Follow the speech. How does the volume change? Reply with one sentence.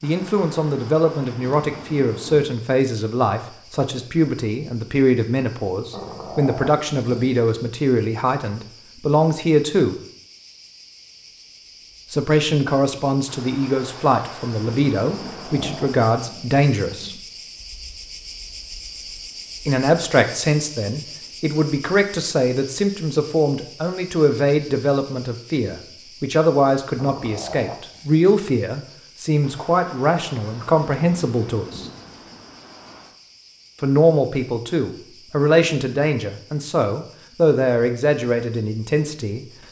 The volume of the speech stays about the same.